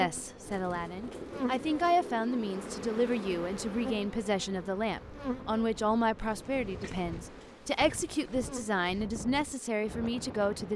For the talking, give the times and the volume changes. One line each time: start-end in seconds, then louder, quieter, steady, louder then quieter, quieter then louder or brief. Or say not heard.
0.0-10.7 steady.